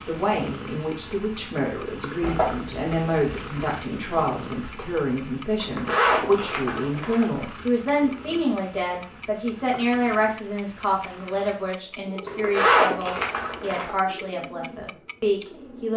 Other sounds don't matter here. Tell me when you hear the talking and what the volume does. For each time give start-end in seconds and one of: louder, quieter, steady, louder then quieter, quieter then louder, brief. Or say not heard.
0.1-15.9 steady.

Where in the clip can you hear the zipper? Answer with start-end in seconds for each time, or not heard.
2.2-3.6, 5.6-7.2, 12.2-13.9.